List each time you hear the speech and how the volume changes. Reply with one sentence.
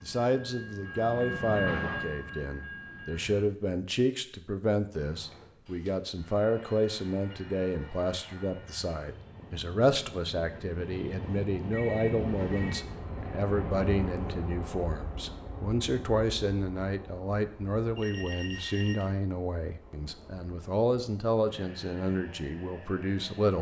You can hear the speech from 0.0 to 23.5 s, at a steady volume.